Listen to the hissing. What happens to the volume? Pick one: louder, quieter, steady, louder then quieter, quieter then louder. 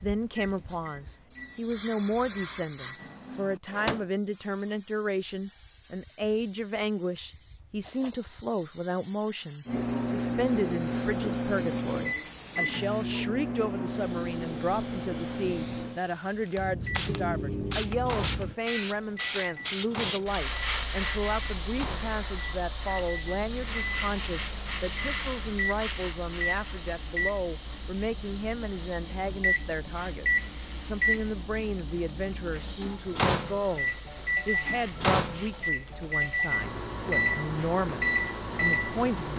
louder then quieter.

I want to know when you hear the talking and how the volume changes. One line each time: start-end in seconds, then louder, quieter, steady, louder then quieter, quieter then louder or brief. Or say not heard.
0.0-39.3 steady.